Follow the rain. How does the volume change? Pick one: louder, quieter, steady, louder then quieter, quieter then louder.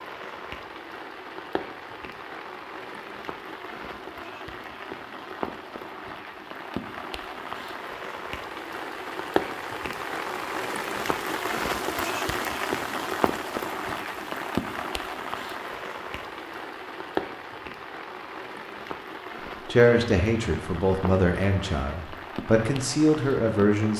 louder then quieter.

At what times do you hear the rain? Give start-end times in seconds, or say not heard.
0.0-23.9.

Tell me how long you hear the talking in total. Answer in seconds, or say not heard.
4 s.